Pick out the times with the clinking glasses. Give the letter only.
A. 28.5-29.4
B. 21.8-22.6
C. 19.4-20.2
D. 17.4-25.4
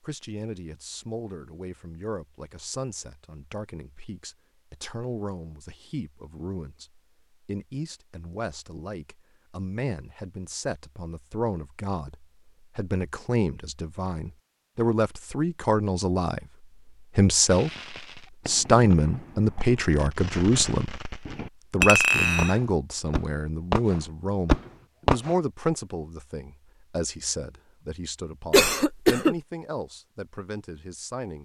B.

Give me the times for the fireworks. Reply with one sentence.
The fireworks can be heard from 17.4 to 25.4 s.